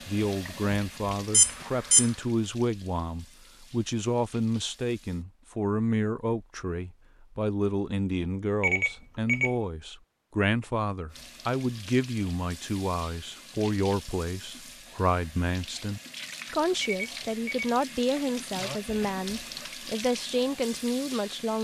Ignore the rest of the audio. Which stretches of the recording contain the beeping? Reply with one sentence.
You can hear the beeping from 1.3 to 2.1 s, from 8.6 to 9.6 s and from 16.8 to 17.8 s.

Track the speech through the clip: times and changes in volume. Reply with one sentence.
The speech can be heard from 0.1 to 21.5 s, at a steady volume.